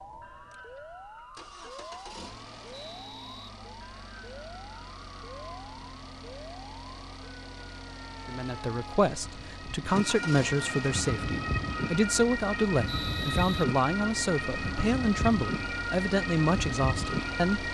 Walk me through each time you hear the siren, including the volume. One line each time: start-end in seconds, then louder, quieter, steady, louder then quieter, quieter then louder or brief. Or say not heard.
0.0-17.6 louder.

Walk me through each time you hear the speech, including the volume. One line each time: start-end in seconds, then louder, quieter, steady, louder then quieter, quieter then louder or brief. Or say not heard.
8.2-17.6 steady.